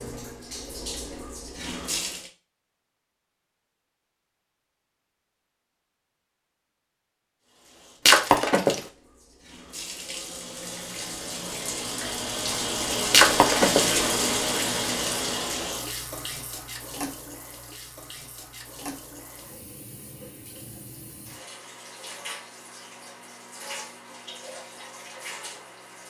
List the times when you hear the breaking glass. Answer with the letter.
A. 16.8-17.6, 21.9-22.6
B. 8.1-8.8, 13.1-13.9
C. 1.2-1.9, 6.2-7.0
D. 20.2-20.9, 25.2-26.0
B.